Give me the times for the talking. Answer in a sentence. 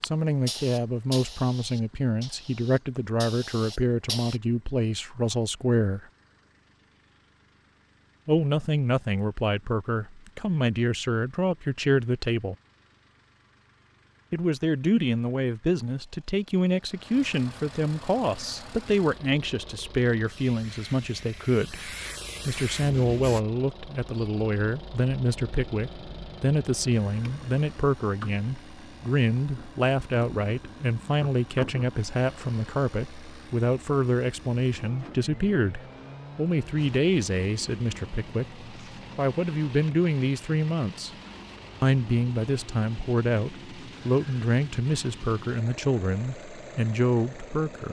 The talking can be heard from 0.0 to 6.0 s, from 8.2 to 12.6 s, from 14.3 to 41.1 s and from 41.8 to 47.8 s.